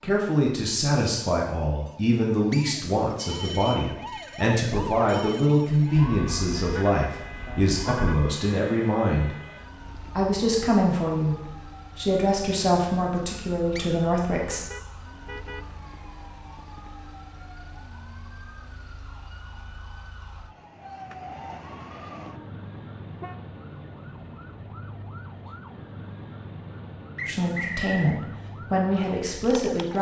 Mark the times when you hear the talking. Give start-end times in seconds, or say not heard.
0.0-9.3, 10.2-14.6, 27.2-29.9.